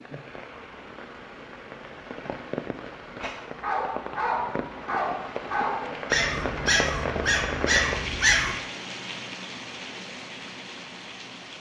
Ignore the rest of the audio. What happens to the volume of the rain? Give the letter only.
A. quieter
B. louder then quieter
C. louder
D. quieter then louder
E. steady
B.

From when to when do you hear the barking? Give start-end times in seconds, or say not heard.
3.6-8.6.